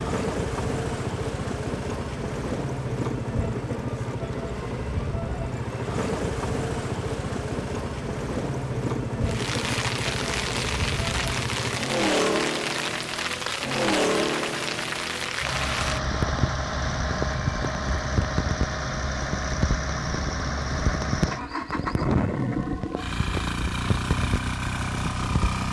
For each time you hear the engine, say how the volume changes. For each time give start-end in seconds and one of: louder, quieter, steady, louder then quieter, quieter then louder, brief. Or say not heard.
0.0-25.6 steady.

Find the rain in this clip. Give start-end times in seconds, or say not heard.
9.2-25.6.